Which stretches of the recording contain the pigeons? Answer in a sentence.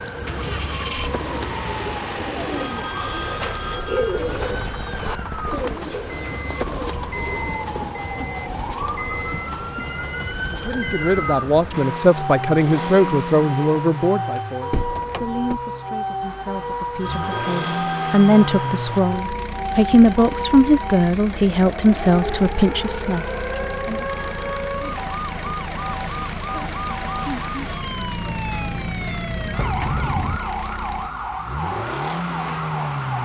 The pigeons can be heard from 0.2 to 7.6 s.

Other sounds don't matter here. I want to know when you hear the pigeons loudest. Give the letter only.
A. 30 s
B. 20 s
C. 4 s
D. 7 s
C.